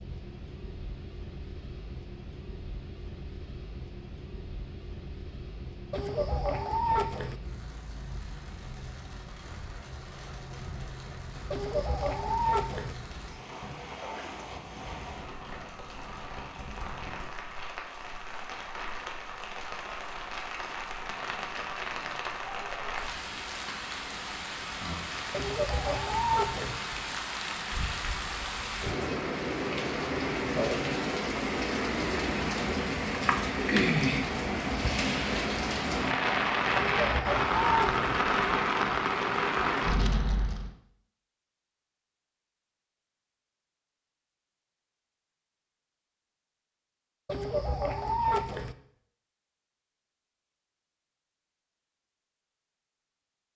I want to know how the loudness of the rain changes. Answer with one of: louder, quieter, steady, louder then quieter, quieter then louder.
louder.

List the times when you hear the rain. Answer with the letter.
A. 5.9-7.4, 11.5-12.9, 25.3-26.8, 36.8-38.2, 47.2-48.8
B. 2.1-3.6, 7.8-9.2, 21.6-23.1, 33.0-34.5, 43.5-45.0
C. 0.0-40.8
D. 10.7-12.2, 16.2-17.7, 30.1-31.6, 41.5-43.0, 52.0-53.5
C.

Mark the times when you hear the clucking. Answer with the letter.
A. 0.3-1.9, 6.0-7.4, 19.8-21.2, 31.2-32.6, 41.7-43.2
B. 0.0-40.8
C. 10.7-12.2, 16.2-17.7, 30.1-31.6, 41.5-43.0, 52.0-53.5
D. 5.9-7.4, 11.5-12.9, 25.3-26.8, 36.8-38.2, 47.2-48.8
D.